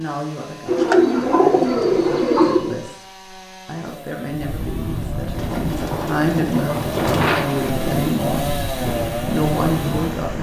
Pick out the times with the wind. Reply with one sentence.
The wind can be heard from 4.2 to 10.3 s.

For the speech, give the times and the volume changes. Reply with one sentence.
You can hear the speech from 0.0 to 8.6 s, getting louder; and briefly from 9.3 to 10.3 s.